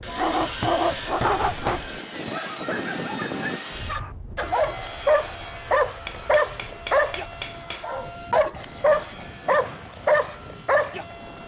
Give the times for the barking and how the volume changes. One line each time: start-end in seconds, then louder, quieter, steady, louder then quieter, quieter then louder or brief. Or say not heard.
0.1-11.2 quieter then louder.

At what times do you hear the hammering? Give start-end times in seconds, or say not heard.
0.6-2.4, 6.0-7.8.